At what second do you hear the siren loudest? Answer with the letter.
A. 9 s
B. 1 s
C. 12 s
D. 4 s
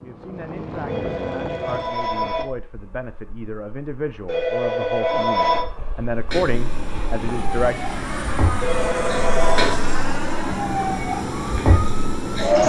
C.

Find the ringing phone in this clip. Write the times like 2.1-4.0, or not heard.
0.8-2.5, 4.2-5.7, 8.6-9.8.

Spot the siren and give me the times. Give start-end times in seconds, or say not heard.
6.2-12.6.